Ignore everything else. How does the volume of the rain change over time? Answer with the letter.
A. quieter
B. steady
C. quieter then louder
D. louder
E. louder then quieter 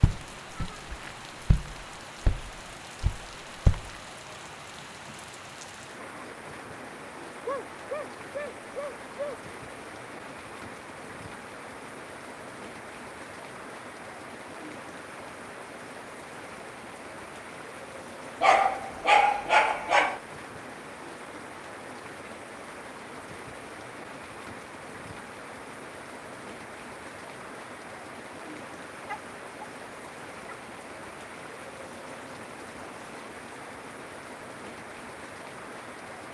B.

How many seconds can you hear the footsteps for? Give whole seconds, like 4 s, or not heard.
4 s.